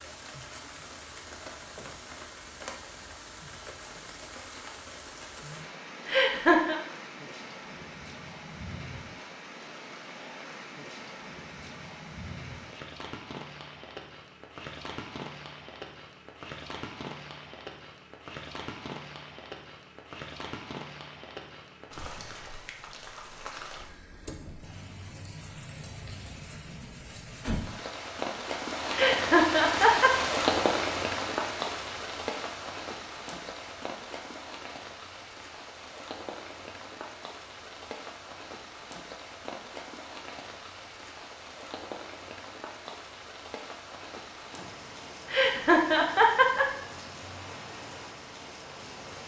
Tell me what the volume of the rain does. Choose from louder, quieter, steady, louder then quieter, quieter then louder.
louder then quieter.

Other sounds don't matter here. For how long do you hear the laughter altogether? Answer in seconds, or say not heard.
3 s.